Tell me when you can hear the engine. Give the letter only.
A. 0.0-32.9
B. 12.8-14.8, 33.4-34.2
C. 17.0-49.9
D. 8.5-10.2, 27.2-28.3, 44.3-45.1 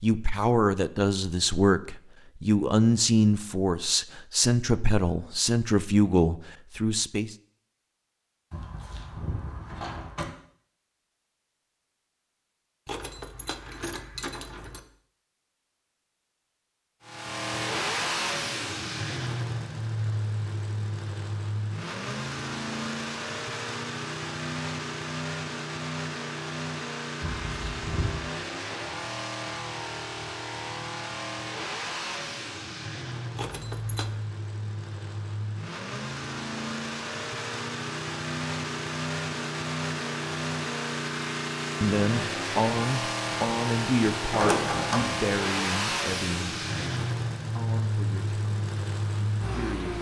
C.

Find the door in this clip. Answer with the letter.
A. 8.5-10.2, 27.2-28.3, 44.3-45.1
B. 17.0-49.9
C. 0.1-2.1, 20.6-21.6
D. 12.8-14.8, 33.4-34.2
A.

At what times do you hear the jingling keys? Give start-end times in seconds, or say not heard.
12.8-14.8, 33.4-34.2.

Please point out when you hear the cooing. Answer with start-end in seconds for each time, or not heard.
not heard.